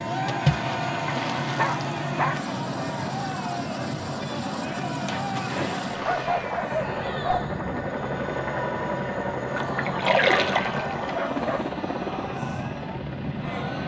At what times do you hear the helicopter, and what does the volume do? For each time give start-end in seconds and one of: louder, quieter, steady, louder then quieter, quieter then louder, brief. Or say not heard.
0.0-13.8 steady.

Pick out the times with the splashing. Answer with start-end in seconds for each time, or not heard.
0.2-1.8, 5.0-6.5, 9.5-11.2.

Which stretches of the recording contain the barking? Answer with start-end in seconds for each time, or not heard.
1.1-2.4, 5.8-7.5, 11.1-11.7.